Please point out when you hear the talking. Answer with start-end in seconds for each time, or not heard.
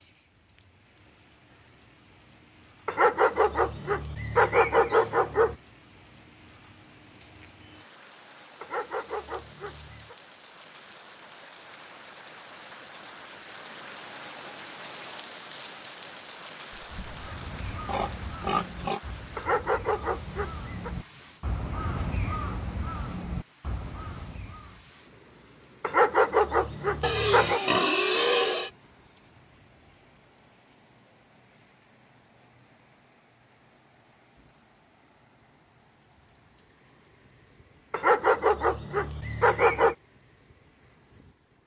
not heard.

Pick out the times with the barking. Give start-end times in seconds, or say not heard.
2.9-5.5, 8.6-10.2, 19.4-20.9, 25.8-27.6, 37.9-40.0.